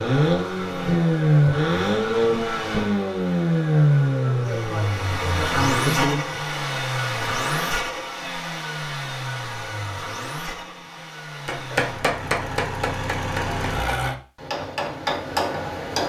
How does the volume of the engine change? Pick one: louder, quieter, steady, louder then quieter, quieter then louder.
quieter.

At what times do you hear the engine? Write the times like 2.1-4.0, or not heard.
0.0-14.2.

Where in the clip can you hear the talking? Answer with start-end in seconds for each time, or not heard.
4.2-6.2.